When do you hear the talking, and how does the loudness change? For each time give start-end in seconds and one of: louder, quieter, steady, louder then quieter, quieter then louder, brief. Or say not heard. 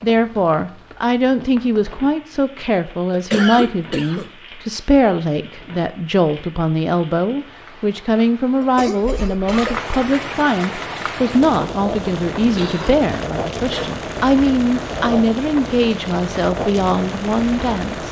0.0-18.0 steady.